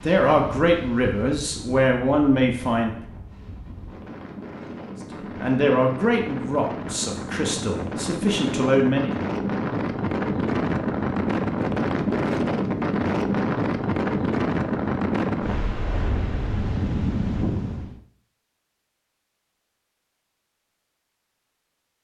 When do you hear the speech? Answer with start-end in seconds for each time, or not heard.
0.0-2.9, 5.4-9.1.